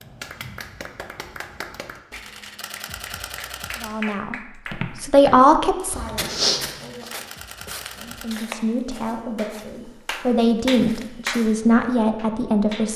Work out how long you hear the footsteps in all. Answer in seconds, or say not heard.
7 s.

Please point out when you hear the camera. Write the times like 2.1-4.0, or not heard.
2.1-4.0, 6.7-8.3.